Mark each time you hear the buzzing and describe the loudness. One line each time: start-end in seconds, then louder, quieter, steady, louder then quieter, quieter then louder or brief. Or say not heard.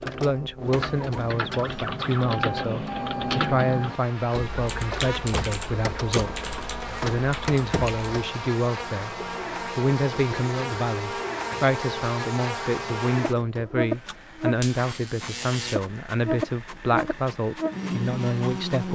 0.0-18.9 louder.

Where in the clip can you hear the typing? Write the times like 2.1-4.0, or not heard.
0.6-8.1.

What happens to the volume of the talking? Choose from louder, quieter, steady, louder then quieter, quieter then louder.
steady.